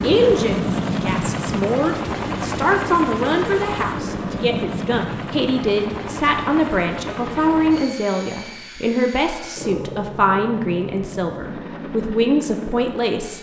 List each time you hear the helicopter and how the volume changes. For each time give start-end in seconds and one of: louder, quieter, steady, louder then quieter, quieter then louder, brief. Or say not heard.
0.0-13.3 quieter.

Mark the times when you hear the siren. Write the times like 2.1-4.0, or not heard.
not heard.